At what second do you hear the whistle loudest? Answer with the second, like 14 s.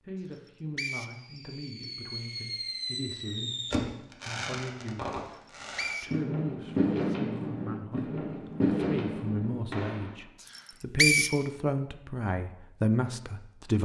11 s.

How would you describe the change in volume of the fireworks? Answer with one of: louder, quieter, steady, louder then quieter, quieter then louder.
louder.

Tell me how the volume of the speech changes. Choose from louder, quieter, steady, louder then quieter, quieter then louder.
louder.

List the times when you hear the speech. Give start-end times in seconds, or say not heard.
0.1-5.2, 6.0-13.8.